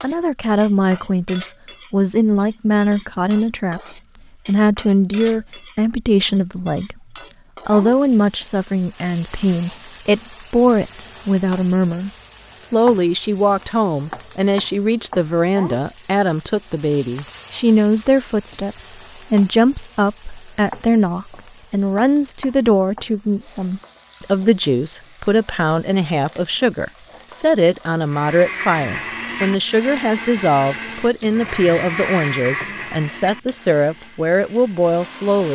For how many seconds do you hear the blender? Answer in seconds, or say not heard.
7 s.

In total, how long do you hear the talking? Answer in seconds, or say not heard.
34 s.